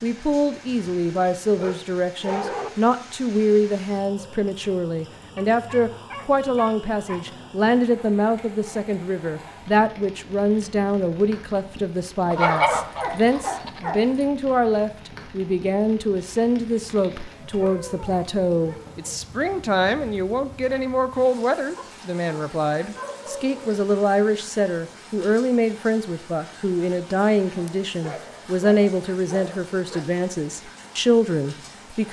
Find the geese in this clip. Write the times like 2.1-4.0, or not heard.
12.3-13.8.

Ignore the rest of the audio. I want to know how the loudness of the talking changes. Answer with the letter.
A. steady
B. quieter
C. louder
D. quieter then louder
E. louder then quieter
A.